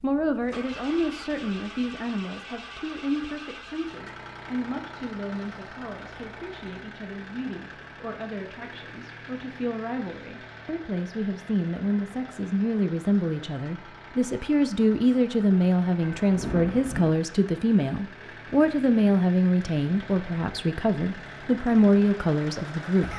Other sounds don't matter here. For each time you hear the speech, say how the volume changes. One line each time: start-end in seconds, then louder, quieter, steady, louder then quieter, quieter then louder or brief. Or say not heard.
0.0-23.1 quieter then louder.